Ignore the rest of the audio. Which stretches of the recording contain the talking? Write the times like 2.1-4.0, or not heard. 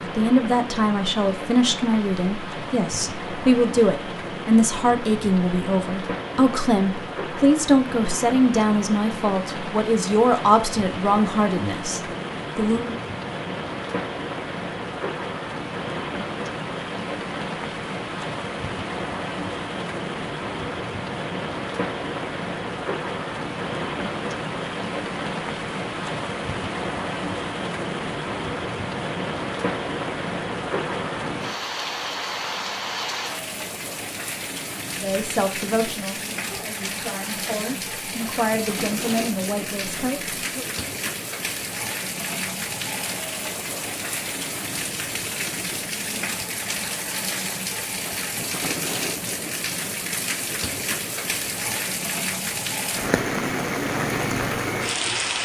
0.0-12.9, 35.0-40.7.